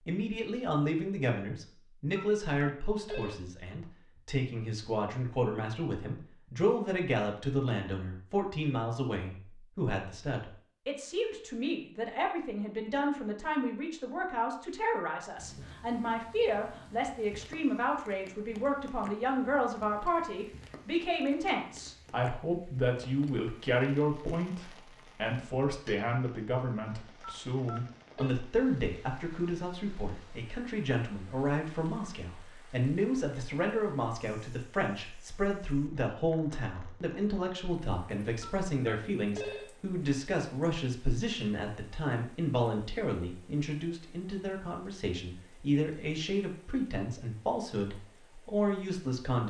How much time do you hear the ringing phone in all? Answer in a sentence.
You can hear the ringing phone for 4 seconds altogether.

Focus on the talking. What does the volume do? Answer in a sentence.
The volume of the talking stays about the same.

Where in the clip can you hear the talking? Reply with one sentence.
You can hear the talking from 0.1 to 49.4 s.